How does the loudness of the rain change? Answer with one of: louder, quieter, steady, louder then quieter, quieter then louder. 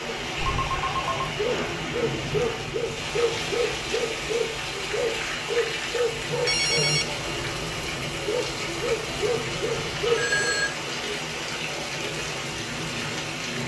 steady.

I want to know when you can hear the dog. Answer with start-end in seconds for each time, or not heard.
0.0-10.6.